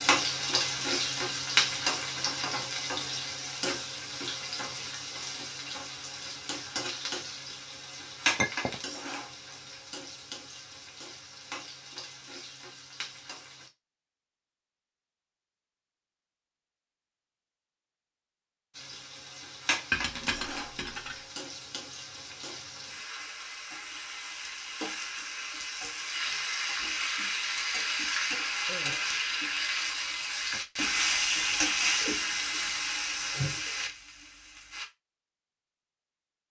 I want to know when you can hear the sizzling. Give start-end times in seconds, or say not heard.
0.0-13.7, 18.7-34.9.